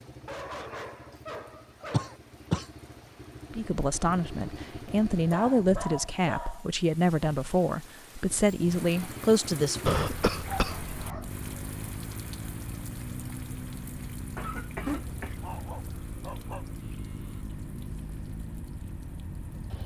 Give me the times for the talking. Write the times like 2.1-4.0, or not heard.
3.5-10.1.